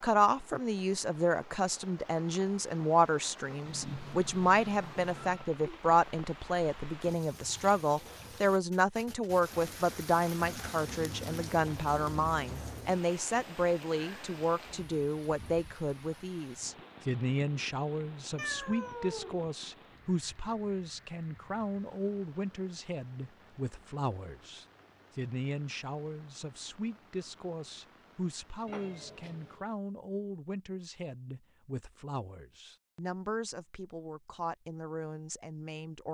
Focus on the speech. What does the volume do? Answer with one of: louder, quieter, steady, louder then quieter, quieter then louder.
quieter.